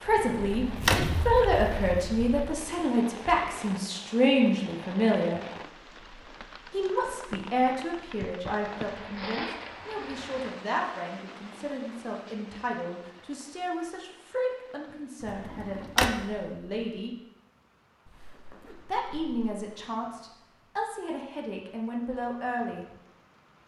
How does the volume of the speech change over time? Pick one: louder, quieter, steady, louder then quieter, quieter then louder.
quieter.